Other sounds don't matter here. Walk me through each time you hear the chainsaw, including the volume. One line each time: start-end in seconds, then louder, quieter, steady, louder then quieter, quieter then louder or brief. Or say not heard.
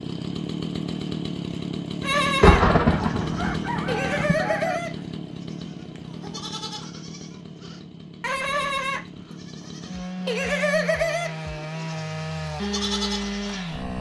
0.0-13.9 quieter then louder.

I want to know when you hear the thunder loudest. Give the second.
3 s.